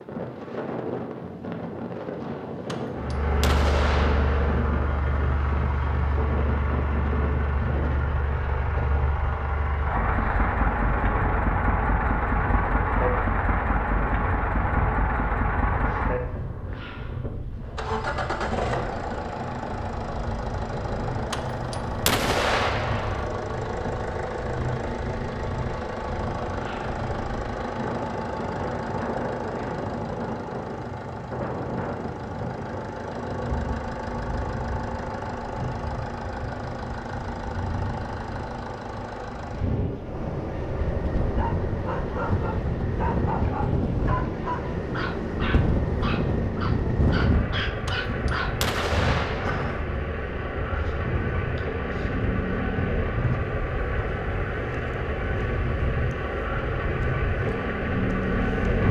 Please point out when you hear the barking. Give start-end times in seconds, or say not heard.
41.2-48.9.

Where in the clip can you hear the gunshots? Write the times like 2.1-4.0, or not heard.
2.6-4.6, 21.3-23.3, 47.9-49.9.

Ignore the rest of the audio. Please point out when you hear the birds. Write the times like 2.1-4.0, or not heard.
not heard.